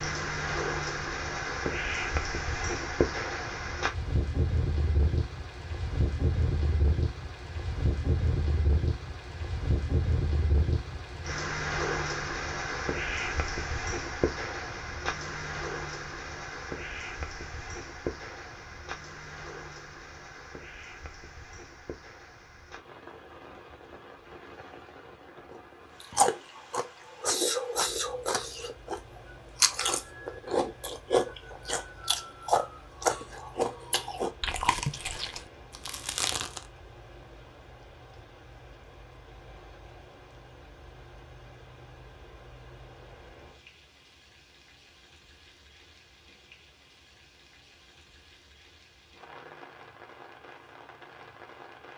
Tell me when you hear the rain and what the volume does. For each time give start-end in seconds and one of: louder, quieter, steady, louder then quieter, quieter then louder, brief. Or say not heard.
0.0-51.9 quieter.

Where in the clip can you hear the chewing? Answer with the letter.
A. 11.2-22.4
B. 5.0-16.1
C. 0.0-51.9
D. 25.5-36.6
D.